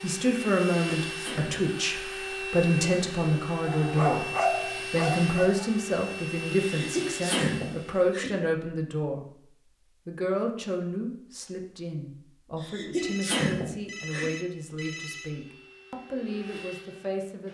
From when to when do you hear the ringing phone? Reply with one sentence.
The ringing phone can be heard from 12.9 to 15.3 s.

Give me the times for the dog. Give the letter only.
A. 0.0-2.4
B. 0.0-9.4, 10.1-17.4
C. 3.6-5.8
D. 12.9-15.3
C.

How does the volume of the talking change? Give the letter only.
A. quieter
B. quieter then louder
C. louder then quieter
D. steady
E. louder
A.